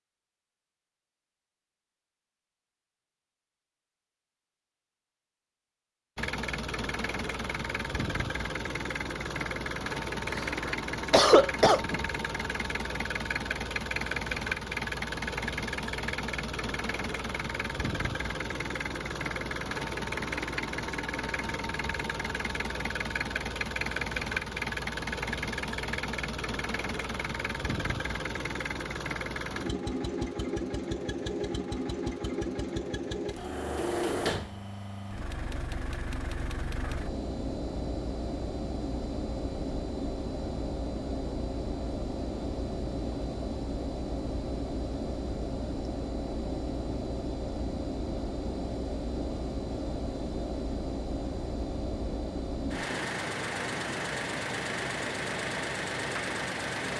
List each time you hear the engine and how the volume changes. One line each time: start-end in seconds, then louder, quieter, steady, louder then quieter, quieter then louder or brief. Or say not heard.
6.2-56.9 steady.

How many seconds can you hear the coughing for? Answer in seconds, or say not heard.
2 s.